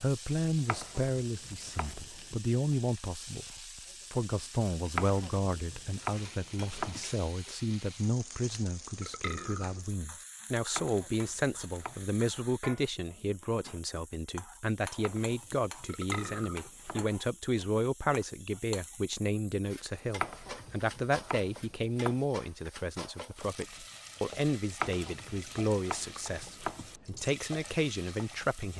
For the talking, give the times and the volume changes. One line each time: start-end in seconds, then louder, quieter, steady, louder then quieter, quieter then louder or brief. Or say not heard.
0.0-28.7 steady.